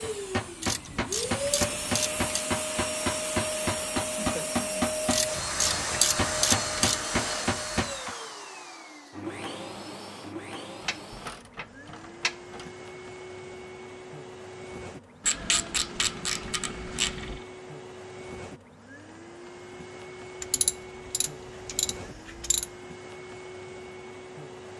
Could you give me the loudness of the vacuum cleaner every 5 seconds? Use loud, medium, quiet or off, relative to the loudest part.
loud, loud, medium, medium, medium.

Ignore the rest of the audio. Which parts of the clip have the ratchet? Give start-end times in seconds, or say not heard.
0.6-2.5, 5.1-7.0, 10.8-12.7, 15.2-17.4, 20.4-22.6.